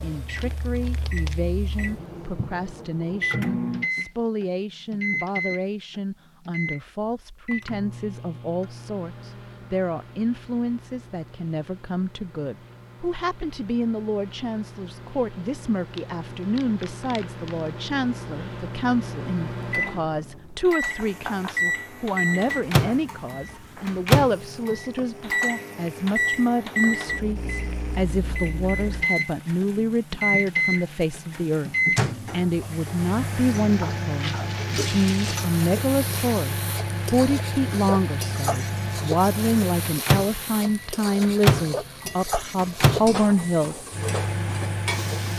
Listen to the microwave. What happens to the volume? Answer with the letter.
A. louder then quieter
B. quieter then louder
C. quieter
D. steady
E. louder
B.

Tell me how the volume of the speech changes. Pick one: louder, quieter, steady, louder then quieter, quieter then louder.
louder.